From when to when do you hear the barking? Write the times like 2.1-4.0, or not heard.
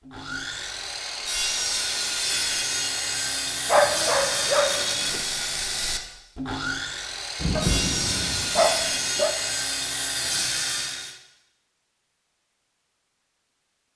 3.6-5.2, 7.5-9.3.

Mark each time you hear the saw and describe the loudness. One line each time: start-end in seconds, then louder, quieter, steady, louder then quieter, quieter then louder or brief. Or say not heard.
0.1-11.2 steady.